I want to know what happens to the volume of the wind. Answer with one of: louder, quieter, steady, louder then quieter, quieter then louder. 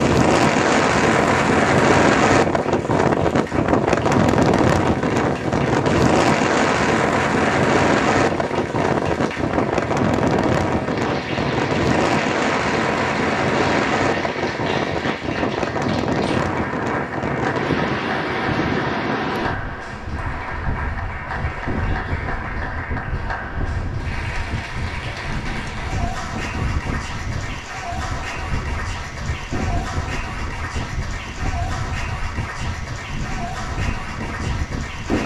quieter.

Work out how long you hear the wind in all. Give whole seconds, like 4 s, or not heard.
35 s.